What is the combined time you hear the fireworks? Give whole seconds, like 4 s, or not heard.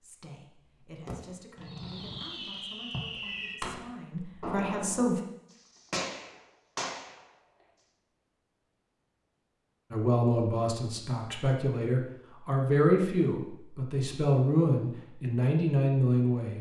6 s.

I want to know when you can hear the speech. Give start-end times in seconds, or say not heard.
0.0-5.2, 9.9-16.5.